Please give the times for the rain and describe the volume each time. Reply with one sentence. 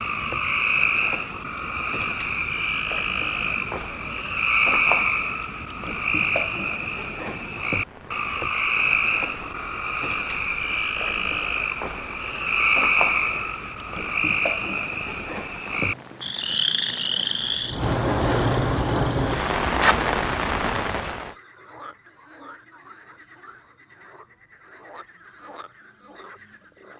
You can hear the rain from 0.0 to 21.4 s, getting louder.